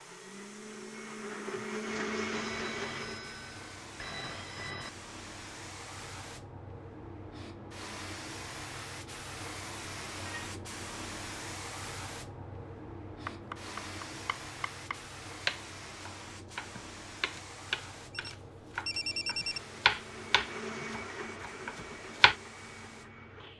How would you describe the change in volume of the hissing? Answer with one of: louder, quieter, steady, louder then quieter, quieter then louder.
louder then quieter.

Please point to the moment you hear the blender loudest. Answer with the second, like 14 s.
2 s.